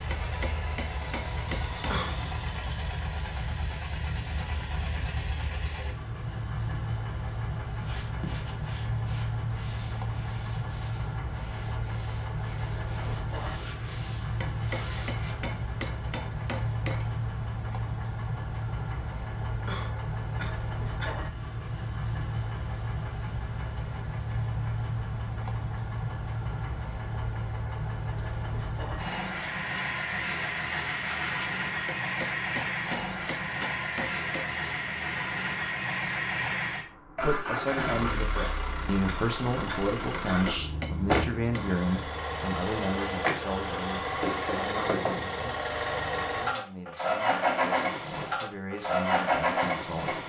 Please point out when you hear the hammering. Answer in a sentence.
You can hear the hammering from 0.1 to 2.0 s, from 14.4 to 17.2 s, from 31.9 to 34.5 s and from 40.1 to 41.7 s.